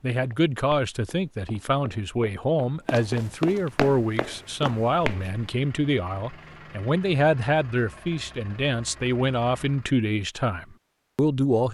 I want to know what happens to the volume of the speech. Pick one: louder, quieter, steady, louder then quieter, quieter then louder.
steady.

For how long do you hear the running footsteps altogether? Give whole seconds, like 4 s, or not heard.
5 s.